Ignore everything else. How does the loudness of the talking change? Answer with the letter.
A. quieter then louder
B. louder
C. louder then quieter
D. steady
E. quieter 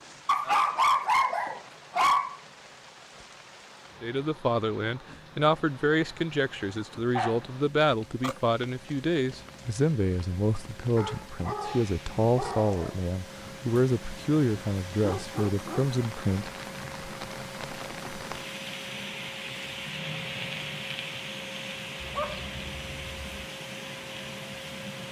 D.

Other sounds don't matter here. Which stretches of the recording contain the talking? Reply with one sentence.
The talking can be heard from 4.0 to 16.5 s.